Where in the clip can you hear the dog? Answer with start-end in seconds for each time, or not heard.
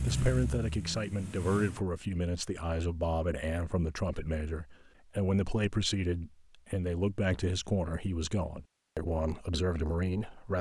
not heard.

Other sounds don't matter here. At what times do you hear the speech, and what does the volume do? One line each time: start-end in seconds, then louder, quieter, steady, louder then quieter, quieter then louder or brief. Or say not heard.
0.0-10.5 steady.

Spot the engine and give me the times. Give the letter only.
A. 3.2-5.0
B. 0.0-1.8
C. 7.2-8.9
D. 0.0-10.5
B.